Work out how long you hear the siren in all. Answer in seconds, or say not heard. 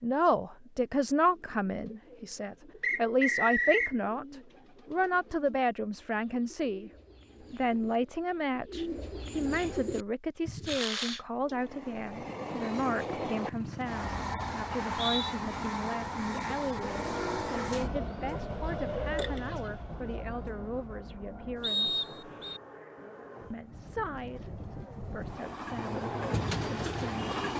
not heard.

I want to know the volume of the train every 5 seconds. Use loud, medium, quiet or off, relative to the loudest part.
off, off, loud, loud, medium, loud.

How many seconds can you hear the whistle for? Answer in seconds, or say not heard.
3 s.